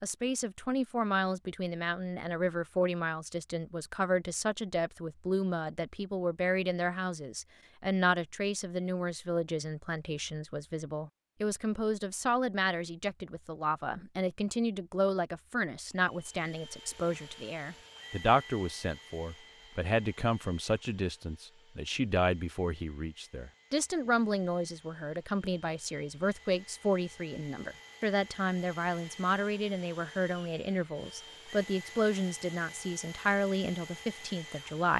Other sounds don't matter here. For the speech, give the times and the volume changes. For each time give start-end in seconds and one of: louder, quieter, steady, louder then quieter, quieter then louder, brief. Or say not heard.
0.0-34.9 steady.